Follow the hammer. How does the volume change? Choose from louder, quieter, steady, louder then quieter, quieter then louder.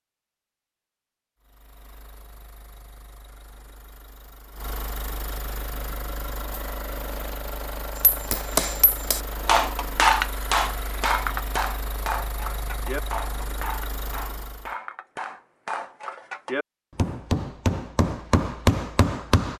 quieter then louder.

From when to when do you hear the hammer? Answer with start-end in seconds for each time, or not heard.
8.0-19.5.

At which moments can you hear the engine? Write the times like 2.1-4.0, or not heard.
1.4-14.8.